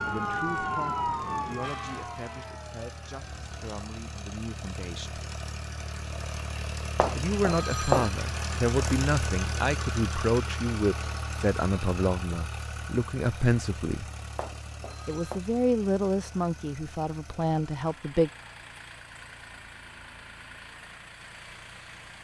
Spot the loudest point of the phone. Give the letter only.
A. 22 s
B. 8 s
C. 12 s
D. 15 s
B.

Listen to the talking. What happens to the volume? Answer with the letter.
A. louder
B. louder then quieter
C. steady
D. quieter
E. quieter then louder
A.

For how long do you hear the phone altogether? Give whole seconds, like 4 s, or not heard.
2 s.